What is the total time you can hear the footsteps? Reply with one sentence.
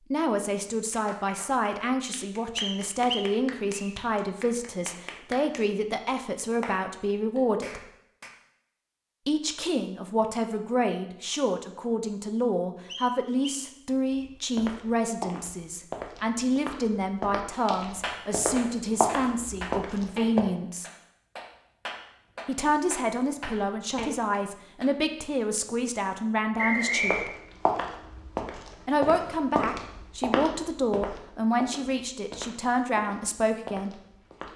The footsteps can be heard for 14 seconds in total.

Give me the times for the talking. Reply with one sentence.
You can hear the talking from 0.1 to 7.8 s, from 9.2 to 20.9 s, from 22.4 to 27.4 s and from 28.9 to 34.0 s.